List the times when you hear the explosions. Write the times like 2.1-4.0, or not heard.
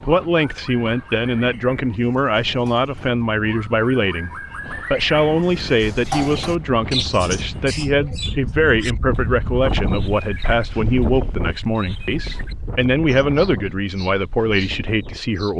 not heard.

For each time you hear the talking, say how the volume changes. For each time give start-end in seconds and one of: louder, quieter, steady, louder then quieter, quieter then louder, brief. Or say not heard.
0.0-15.5 steady.